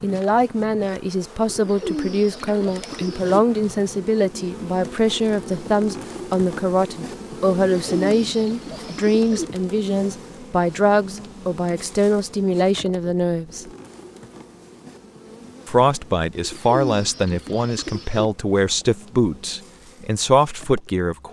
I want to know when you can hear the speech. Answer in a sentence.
The speech can be heard from 0.0 to 13.7 s and from 15.7 to 21.2 s.